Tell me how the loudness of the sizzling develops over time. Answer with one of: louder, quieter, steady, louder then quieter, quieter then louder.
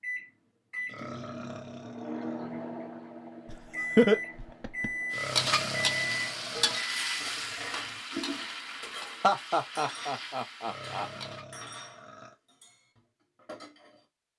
quieter.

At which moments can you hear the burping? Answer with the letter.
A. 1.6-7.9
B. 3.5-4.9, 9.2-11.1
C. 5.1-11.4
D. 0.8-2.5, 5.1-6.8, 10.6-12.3
D.